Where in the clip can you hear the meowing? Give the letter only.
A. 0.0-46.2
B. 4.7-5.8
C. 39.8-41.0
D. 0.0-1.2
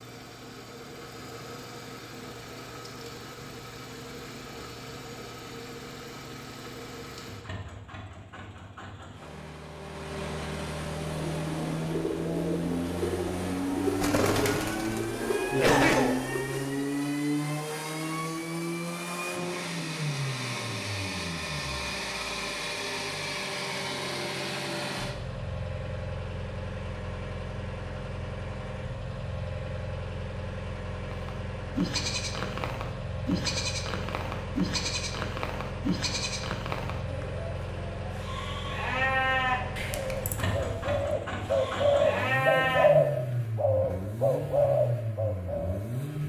C.